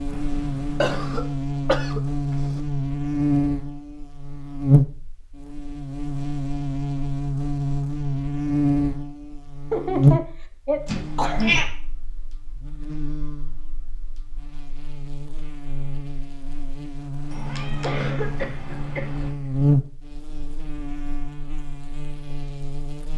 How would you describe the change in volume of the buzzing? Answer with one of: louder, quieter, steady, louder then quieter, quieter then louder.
quieter then louder.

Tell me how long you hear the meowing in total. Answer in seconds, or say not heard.
4 s.